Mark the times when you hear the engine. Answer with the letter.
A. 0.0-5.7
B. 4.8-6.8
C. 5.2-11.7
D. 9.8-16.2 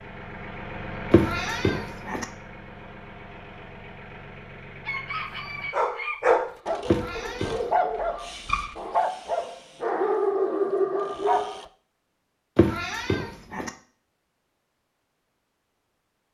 A.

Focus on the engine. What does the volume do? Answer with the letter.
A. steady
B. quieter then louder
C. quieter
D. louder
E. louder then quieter
C.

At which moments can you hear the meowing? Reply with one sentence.
The meowing can be heard from 1.1 to 2.2 s, from 6.8 to 7.7 s and from 12.6 to 13.7 s.